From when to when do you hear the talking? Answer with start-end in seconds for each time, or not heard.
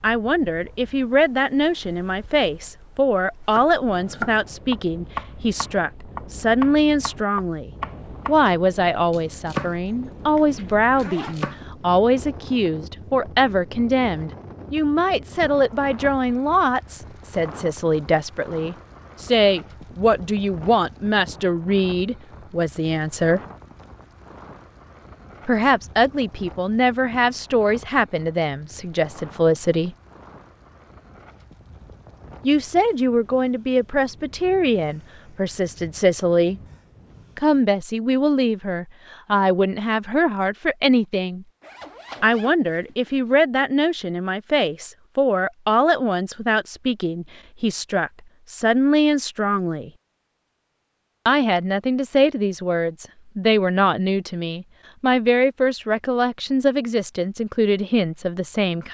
0.0-23.4, 25.4-29.9, 32.4-36.6, 37.4-41.5, 42.2-49.9, 51.2-58.8.